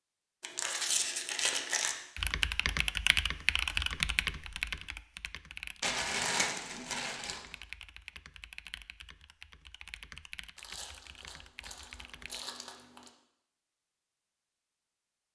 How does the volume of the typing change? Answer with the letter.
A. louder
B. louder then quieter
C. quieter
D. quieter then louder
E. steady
C.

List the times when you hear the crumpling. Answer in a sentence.
The crumpling can be heard from 0.4 to 1.9 s, from 5.8 to 7.5 s and from 10.6 to 13.1 s.